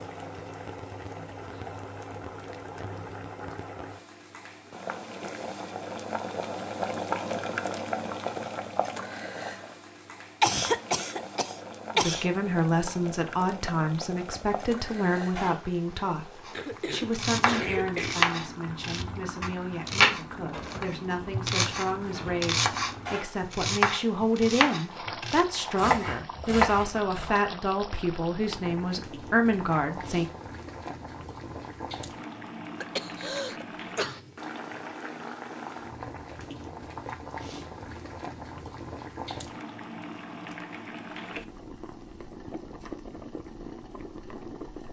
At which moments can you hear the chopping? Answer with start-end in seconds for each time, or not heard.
16.4-27.3.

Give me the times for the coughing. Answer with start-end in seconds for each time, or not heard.
10.4-12.2, 16.5-18.2, 32.8-34.2.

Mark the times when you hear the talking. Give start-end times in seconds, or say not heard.
11.9-30.3.